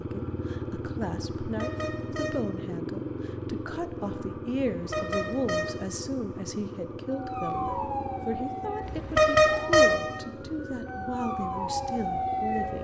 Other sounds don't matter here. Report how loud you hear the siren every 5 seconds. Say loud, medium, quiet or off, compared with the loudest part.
off, loud, loud.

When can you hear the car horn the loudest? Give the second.
9 s.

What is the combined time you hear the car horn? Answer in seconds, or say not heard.
3 s.